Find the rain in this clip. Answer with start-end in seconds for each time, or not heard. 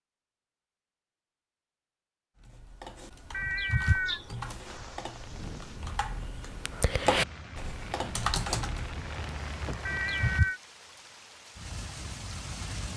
4.6-12.9.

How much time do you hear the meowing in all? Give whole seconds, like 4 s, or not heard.
2 s.